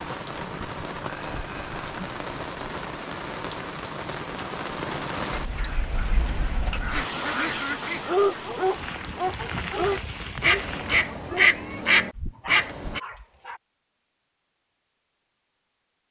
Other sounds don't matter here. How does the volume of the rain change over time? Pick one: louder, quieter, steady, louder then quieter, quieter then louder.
steady.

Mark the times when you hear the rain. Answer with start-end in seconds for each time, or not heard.
0.0-11.1.